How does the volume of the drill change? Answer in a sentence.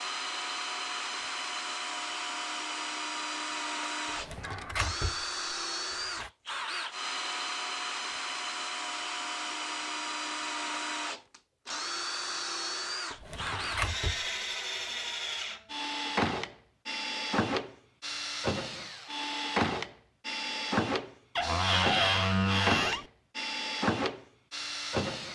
The loudness of the drill stays about the same.